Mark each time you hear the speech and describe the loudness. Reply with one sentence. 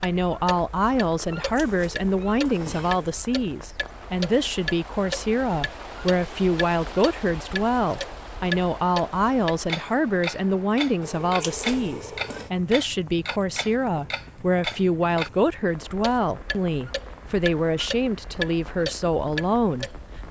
You can hear the speech from 0.0 to 19.9 s, at a steady volume.